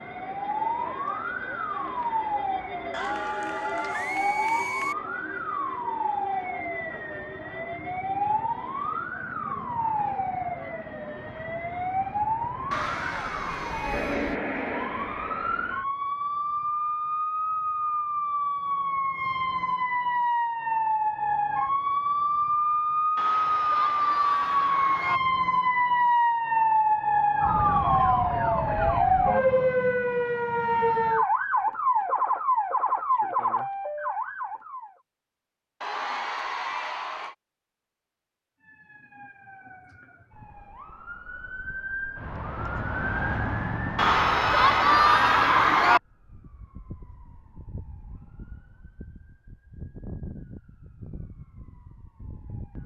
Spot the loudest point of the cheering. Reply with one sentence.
The volume of the cheering peaks at 45 seconds.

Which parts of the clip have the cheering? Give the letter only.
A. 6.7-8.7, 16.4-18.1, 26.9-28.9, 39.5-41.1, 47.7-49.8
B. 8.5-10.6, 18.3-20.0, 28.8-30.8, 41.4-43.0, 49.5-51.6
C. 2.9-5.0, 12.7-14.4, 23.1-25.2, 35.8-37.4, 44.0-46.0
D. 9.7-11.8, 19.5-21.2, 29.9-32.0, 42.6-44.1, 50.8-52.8
C.